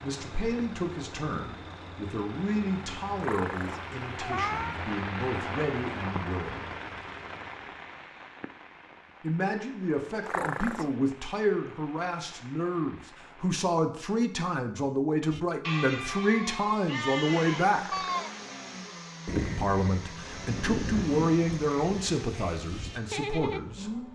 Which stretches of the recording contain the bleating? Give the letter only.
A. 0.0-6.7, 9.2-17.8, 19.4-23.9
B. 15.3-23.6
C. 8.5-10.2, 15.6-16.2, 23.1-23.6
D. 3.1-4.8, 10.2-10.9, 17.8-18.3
B.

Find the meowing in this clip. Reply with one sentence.
The meowing can be heard from 3.1 to 4.8 s, from 10.2 to 10.9 s and from 17.8 to 18.3 s.